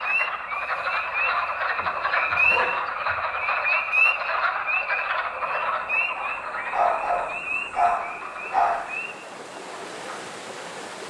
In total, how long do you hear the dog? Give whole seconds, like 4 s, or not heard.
4 s.